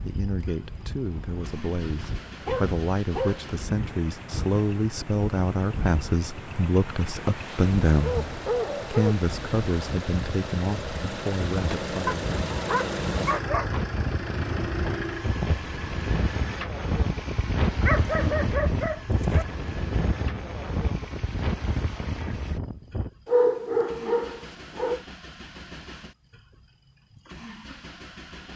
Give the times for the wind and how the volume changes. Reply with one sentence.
The wind can be heard from 0.0 to 23.1 s, getting louder.